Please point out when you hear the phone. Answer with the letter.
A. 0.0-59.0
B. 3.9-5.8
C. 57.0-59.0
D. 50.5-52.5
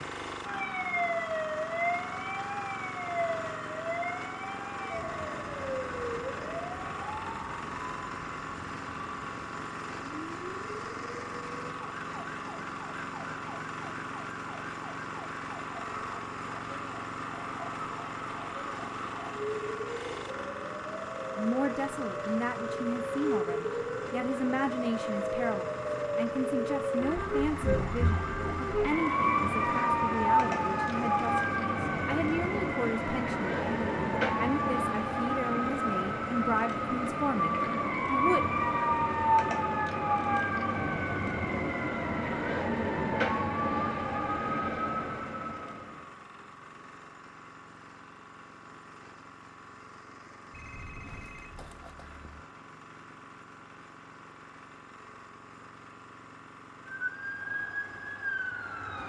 D.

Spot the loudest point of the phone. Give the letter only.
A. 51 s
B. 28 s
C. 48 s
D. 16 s
A.